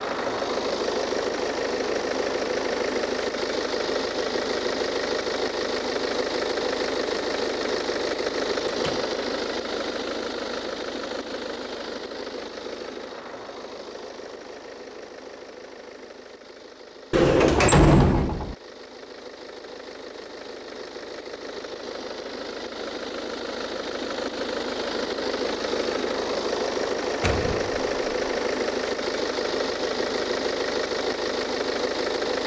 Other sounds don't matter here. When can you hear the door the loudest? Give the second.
18 s.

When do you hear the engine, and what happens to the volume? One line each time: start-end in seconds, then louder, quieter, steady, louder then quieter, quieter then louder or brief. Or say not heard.
0.0-32.4 quieter then louder.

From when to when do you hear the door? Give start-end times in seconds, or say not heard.
8.7-9.1, 17.1-18.6, 27.2-27.9.